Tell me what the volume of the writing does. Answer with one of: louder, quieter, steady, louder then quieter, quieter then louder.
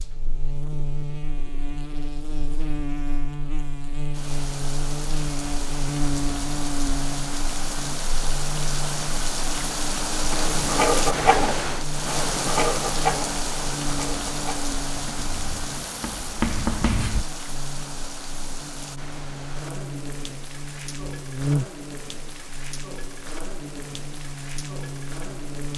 quieter then louder.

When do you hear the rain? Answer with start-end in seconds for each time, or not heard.
4.1-25.7.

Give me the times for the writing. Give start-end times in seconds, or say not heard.
10.3-17.2.